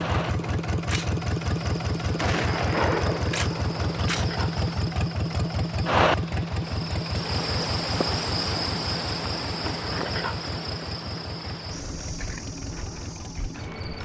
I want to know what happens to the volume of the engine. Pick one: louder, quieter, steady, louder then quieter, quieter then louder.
quieter.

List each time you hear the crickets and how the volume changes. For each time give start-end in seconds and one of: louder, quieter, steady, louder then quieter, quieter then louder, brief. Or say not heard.
0.0-13.9 louder then quieter.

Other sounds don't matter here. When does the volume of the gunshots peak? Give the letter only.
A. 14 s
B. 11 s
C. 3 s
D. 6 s
C.